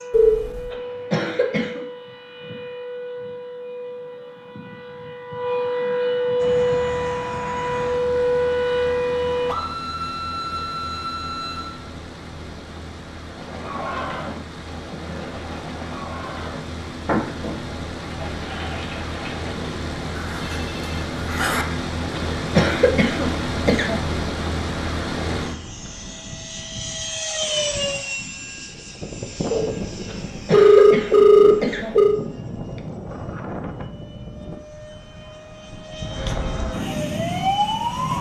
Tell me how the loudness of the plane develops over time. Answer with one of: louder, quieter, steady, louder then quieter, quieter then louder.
louder then quieter.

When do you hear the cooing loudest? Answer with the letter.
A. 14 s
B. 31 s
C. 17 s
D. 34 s
C.